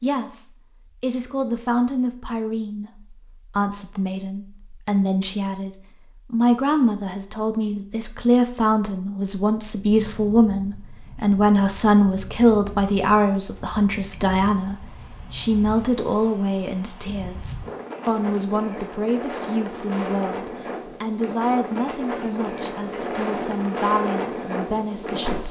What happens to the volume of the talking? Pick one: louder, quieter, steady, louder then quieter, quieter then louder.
louder then quieter.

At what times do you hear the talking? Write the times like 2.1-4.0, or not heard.
0.0-25.4.